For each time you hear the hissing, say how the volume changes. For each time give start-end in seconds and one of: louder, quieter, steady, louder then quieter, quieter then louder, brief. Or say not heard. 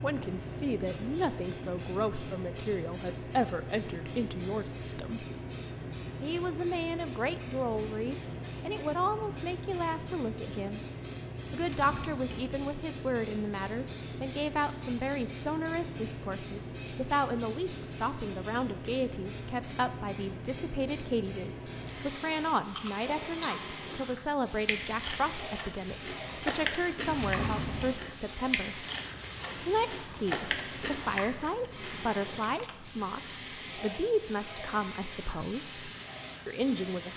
0.0-37.1 steady.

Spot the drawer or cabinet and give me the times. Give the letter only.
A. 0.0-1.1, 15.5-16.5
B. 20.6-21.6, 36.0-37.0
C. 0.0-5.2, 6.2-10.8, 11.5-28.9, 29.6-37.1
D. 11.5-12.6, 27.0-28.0
D.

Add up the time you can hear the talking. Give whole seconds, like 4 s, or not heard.
35 s.